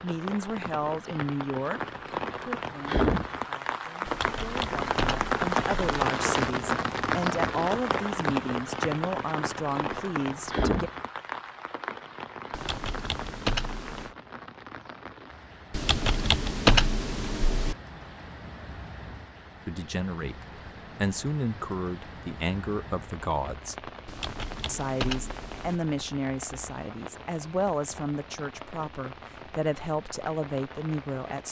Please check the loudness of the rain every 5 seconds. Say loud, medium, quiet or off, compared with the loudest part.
loud, loud, medium, quiet, quiet, quiet, quiet.